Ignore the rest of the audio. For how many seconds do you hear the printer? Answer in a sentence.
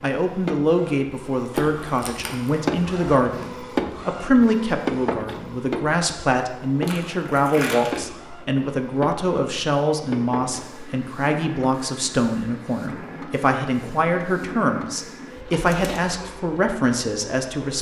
You can hear the printer for 18 seconds altogether.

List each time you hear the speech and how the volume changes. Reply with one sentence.
You can hear the speech from 0.0 to 17.7 s, at a steady volume.